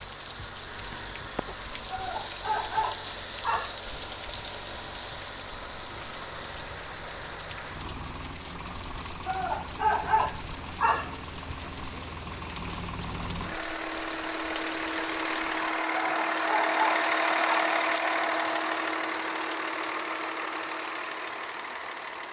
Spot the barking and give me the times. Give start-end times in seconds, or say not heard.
1.9-3.8, 9.2-11.2, 15.9-17.6.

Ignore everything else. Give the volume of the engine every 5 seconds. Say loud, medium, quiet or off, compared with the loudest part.
quiet, quiet, medium, loud, medium.